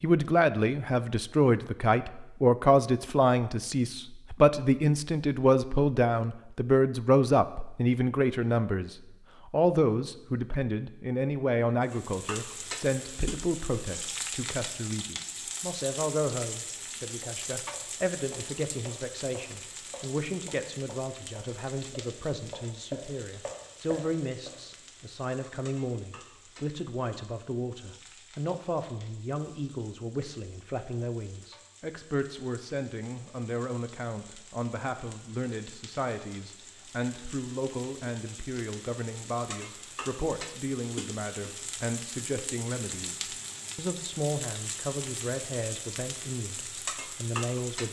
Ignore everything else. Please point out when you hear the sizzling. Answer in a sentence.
The sizzling can be heard from 11.8 to 47.8 s.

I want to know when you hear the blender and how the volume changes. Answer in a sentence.
You can't hear the blender here.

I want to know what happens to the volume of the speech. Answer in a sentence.
The volume of the speech goes down.